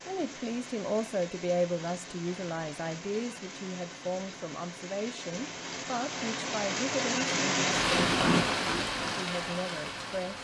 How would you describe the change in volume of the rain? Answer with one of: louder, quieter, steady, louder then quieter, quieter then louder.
louder.